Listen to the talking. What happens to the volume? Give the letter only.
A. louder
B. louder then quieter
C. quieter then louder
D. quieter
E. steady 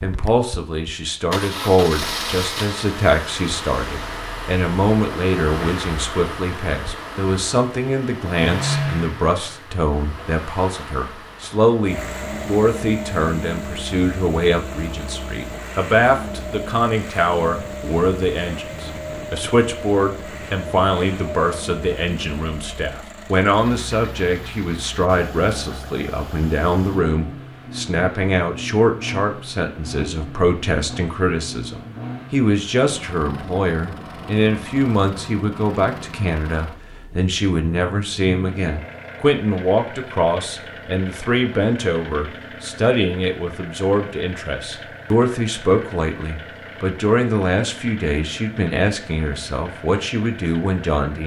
E.